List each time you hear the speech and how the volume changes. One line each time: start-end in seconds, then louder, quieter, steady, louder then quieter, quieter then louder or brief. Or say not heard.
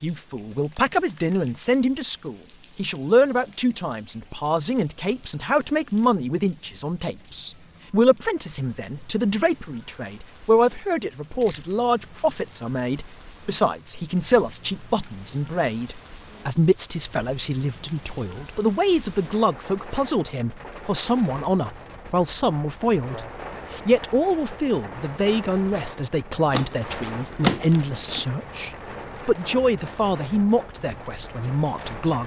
0.0-32.2 steady.